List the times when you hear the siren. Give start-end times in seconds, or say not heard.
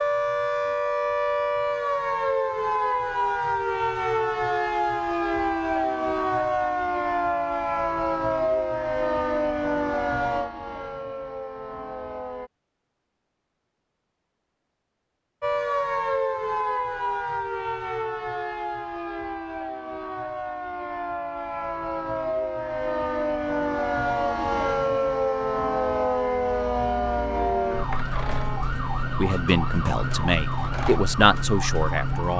0.0-12.5, 15.4-32.3.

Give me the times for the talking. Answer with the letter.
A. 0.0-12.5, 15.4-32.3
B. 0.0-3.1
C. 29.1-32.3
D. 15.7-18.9
C.